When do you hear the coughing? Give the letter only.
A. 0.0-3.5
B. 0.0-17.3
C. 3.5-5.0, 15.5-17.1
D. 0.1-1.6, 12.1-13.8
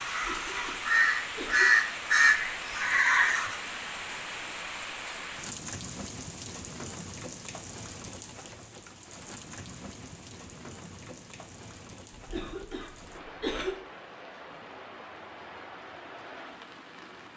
D.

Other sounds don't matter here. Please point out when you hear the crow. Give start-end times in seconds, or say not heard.
0.0-3.5.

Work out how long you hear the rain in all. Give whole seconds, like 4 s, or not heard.
17 s.